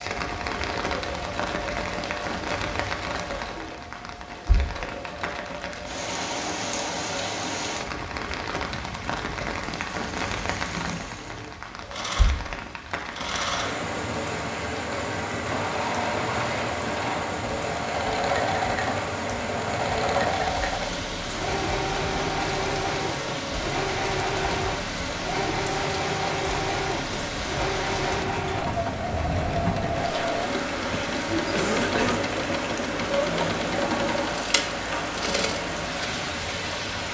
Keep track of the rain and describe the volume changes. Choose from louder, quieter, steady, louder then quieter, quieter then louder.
steady.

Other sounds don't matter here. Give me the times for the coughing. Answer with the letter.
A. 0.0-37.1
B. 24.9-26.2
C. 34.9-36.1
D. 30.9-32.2
D.